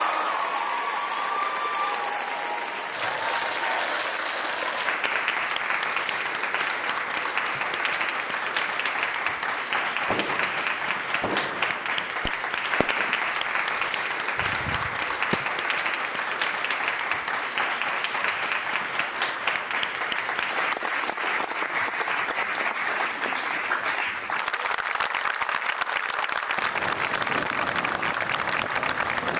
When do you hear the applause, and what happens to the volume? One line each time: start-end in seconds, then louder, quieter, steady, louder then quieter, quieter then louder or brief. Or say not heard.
0.0-29.3 steady.